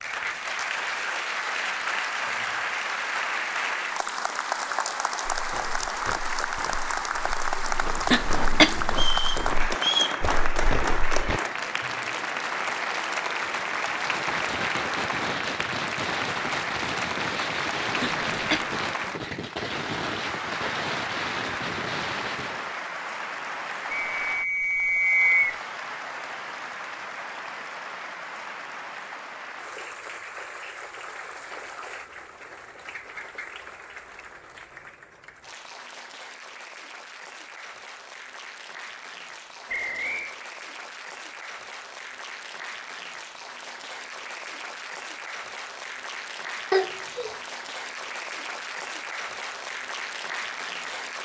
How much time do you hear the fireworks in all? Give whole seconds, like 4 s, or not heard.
9 s.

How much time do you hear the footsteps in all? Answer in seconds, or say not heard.
6 s.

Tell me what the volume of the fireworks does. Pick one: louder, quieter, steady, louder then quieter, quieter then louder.
steady.